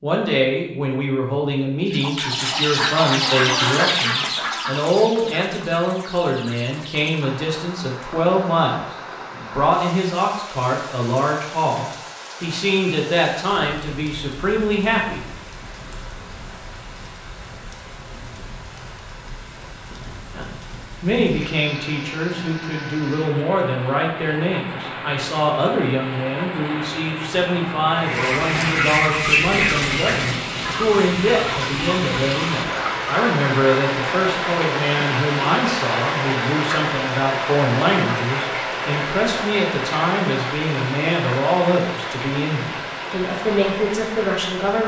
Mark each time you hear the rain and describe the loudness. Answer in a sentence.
You can hear the rain from 7.2 to 44.8 s, getting louder.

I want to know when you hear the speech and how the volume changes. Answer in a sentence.
You can hear the speech from 0.0 to 15.2 s, at a steady volume; and from 20.3 to 44.8 s, at a steady volume.